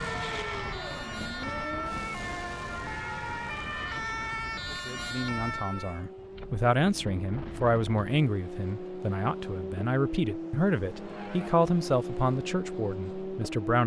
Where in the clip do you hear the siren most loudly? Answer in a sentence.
The volume of the siren peaks at 4 seconds.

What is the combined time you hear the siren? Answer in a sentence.
You can hear the siren for 6 seconds altogether.